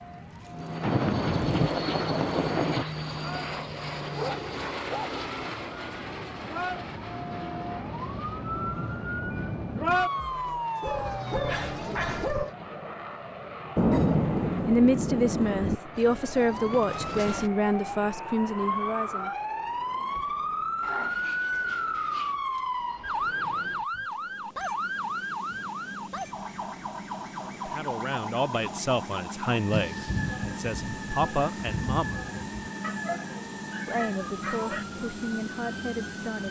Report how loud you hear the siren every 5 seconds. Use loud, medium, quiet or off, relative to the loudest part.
quiet, loud, loud, loud, loud, medium, medium, medium.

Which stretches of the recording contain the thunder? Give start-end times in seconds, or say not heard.
0.8-2.9, 13.8-15.8, 29.7-32.5.